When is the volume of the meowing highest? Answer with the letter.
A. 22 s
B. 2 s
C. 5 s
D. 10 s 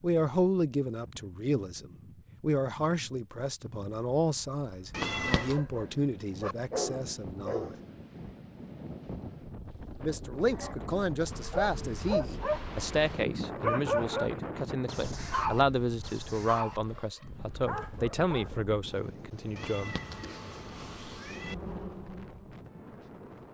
C.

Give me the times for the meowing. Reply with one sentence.
You can hear the meowing from 4.9 to 5.6 s and from 19.6 to 21.6 s.